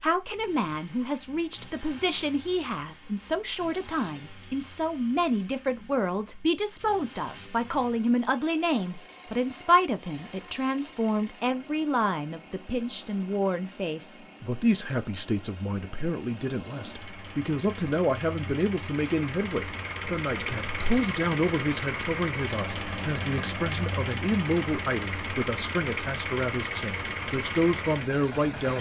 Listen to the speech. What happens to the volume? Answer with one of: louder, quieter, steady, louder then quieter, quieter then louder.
steady.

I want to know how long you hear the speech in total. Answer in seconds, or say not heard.
29 s.